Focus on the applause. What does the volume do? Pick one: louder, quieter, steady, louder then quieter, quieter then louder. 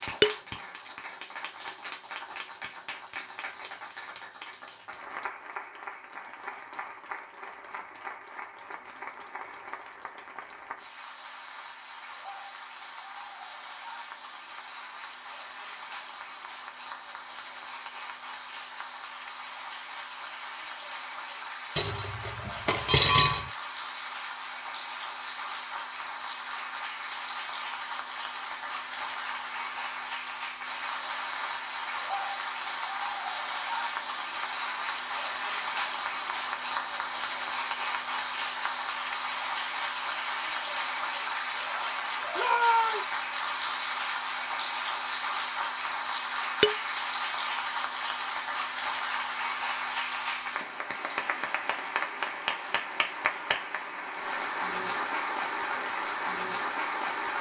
louder.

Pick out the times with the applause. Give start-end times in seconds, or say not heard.
0.0-57.3.